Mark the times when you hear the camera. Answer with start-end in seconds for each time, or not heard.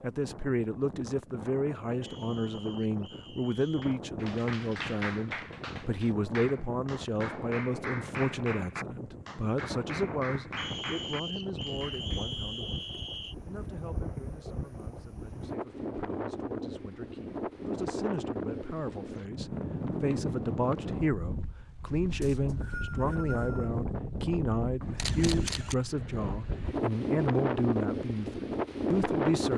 24.9-25.8.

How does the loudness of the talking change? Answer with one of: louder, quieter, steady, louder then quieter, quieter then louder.
quieter then louder.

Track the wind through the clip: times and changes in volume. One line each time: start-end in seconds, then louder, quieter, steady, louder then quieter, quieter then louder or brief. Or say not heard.
0.0-29.5 louder.